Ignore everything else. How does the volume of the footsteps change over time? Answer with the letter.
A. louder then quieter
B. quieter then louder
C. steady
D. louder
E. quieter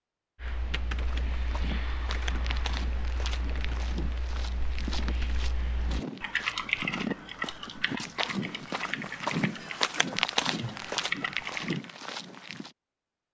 D.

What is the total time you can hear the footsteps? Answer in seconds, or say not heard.
12 s.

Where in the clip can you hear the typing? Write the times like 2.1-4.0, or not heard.
0.4-11.8.